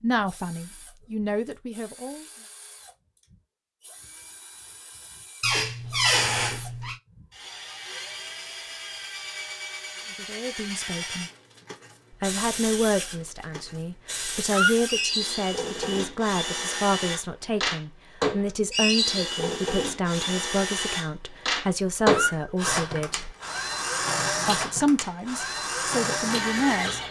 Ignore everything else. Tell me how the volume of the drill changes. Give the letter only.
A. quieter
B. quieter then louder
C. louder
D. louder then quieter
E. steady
C.